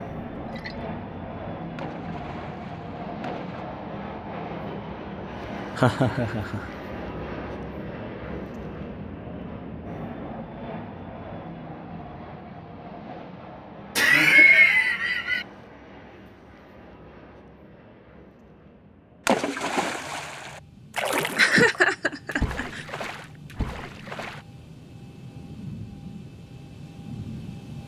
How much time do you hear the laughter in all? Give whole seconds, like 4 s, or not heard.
4 s.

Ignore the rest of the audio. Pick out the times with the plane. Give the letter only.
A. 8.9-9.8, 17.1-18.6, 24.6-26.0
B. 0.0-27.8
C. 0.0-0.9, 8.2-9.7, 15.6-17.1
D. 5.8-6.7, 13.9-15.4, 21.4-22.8
B.